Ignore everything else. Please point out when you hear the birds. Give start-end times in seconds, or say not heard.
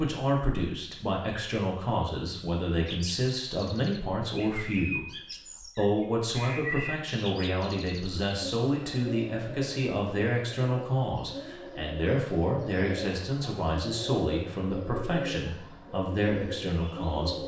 2.9-17.4.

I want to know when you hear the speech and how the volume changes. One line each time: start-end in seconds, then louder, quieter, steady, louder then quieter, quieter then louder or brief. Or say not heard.
0.0-17.4 steady.